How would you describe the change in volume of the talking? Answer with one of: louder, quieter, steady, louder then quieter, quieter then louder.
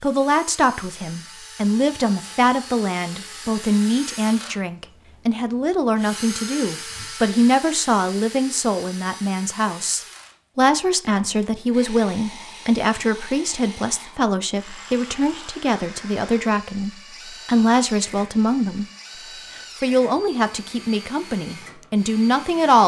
steady.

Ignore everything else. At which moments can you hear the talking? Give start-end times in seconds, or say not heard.
0.0-18.9, 19.8-22.8.